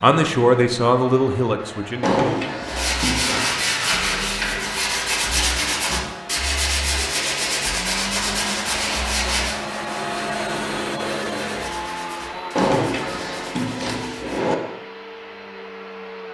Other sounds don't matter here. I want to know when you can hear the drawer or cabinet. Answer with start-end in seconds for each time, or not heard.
2.0-3.5, 12.6-14.6.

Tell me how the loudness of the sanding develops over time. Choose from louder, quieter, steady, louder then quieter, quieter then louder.
quieter.